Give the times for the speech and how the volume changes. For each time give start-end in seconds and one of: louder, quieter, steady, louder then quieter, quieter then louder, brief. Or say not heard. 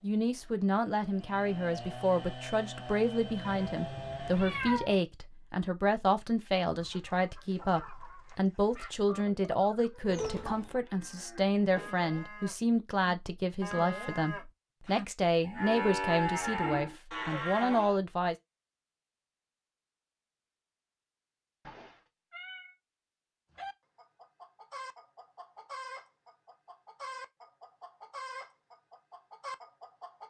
0.0-18.4 steady.